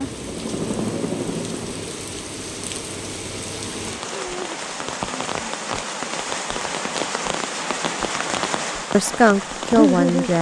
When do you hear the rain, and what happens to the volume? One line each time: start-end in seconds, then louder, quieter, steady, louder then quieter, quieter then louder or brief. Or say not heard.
0.0-10.3 louder.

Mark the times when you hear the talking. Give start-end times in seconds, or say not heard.
8.9-10.3.